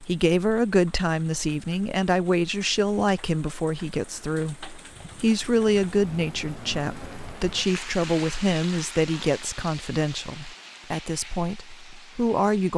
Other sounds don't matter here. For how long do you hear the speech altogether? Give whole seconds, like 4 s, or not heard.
13 s.